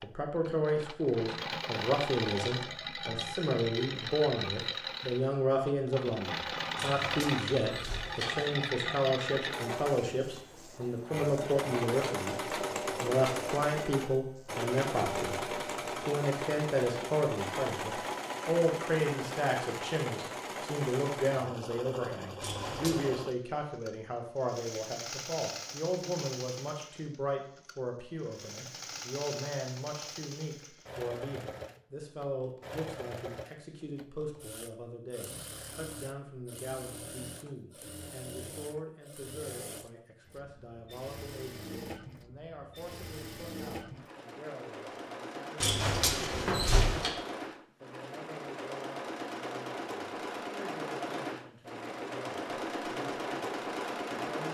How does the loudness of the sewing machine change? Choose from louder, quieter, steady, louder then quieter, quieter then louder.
quieter then louder.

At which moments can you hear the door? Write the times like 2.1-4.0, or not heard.
6.8-8.5, 22.4-23.1, 45.6-47.1.